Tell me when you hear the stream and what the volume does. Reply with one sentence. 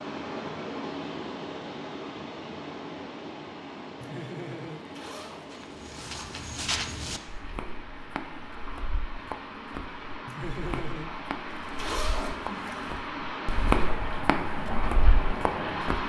You can hear the stream from 0.0 to 16.0 s, getting quieter then louder.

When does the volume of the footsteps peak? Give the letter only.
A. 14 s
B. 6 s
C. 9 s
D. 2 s
A.